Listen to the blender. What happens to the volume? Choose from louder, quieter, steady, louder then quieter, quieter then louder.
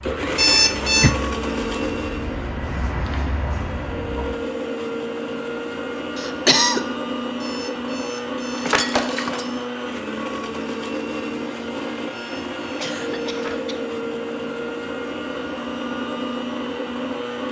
steady.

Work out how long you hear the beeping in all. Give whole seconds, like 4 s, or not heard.
4 s.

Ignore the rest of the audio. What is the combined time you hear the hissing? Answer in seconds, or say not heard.
4 s.